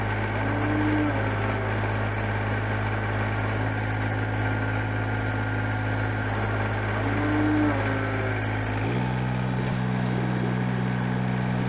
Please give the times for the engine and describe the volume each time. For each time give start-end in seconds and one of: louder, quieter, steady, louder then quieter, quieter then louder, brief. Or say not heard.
0.0-11.6 steady.